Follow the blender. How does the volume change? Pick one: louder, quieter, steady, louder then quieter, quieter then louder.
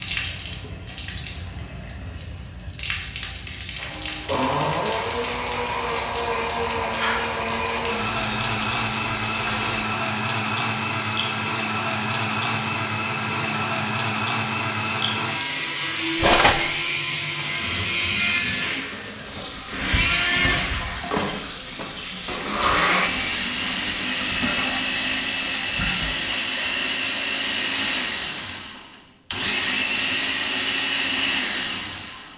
steady.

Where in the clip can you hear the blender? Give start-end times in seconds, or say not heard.
3.8-32.3.